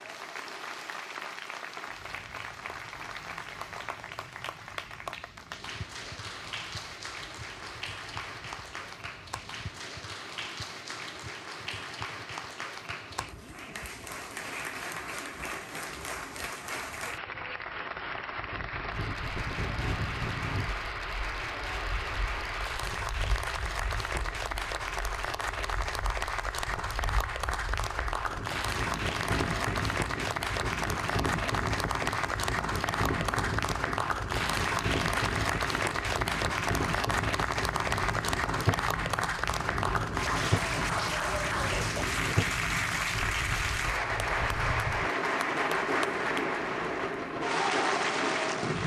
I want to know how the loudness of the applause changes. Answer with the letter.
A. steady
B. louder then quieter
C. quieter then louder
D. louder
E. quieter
D.